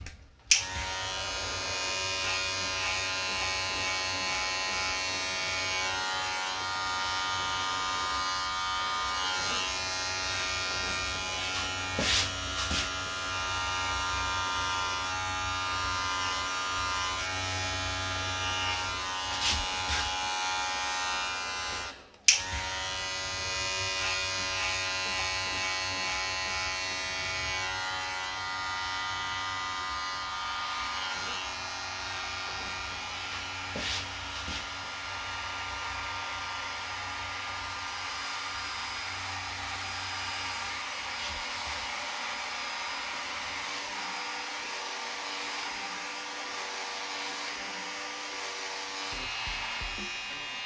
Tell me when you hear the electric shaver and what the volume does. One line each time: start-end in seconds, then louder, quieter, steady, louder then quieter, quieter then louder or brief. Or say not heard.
0.0-50.6 quieter.